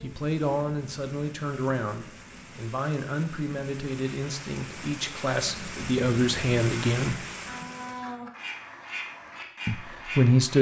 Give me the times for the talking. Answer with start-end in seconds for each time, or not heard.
0.0-7.2, 9.7-10.5.